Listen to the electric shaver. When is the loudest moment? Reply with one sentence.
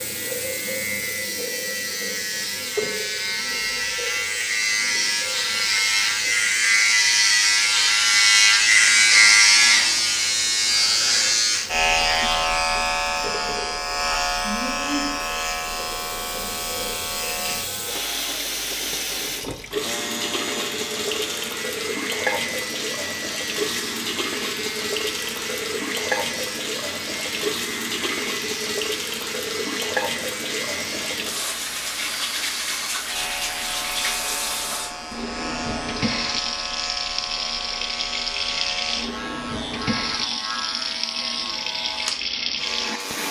The volume of the electric shaver peaks at 9 seconds.